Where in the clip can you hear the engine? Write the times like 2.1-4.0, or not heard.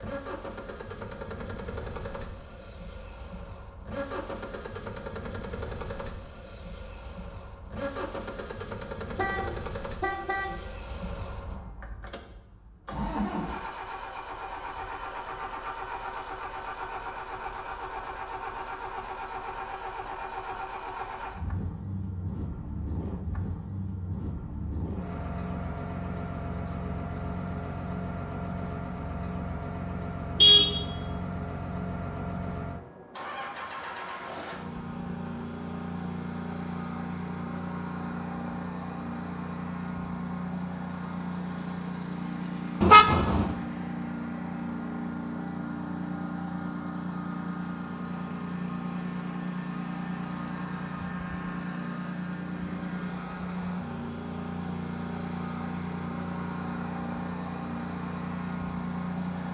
0.0-59.4.